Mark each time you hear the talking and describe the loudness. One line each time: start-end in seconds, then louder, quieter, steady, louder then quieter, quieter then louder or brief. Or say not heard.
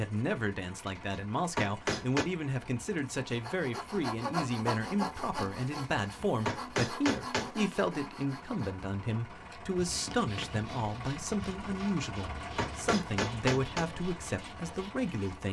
0.0-15.4 steady.